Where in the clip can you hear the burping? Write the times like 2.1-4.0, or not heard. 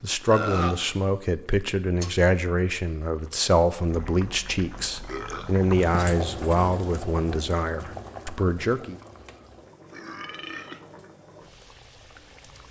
0.3-0.8, 5.0-5.5, 9.9-10.8.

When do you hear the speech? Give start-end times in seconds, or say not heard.
0.0-8.9.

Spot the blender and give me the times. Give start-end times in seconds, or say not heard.
not heard.